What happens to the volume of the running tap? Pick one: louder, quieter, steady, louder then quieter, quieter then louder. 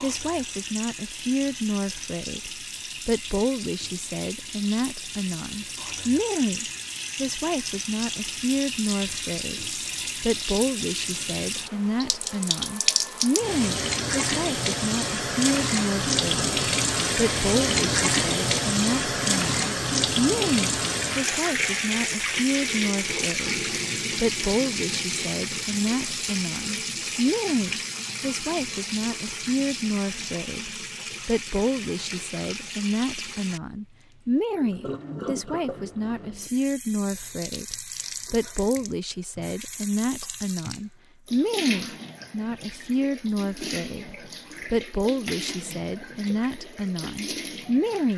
louder then quieter.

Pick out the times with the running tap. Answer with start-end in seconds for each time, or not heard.
0.0-48.1.